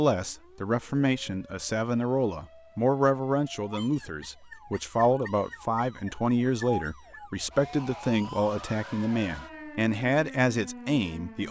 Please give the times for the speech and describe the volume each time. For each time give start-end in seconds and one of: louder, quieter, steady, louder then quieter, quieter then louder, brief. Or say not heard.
0.0-11.4 steady.